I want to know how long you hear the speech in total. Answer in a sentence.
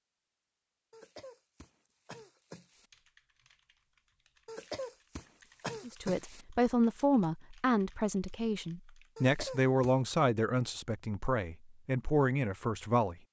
The speech can be heard for 7 seconds in total.